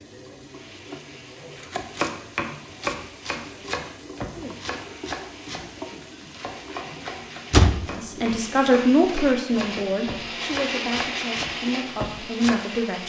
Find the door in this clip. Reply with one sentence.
You can hear the door from 7.5 to 8.4 s.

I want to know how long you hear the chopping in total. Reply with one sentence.
The chopping can be heard for 11 seconds in total.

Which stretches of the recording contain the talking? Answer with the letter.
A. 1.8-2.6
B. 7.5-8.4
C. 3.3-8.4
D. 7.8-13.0
D.